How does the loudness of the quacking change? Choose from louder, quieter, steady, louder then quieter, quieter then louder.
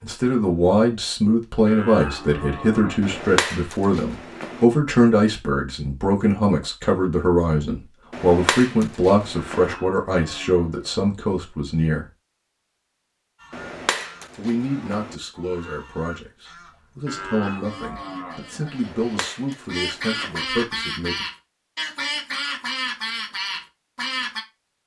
louder.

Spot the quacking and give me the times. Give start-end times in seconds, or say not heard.
13.3-24.4.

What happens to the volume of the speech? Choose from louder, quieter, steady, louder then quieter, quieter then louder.
quieter.